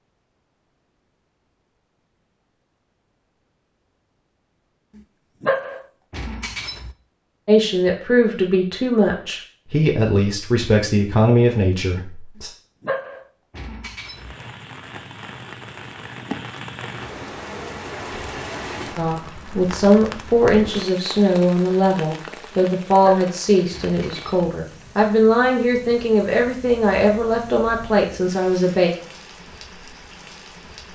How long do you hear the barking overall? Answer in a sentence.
The barking can be heard for 5 seconds in total.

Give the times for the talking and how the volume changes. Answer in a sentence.
You can hear the talking from 7.5 to 12.5 s, at a steady volume; and from 18.9 to 28.9 s, at a steady volume.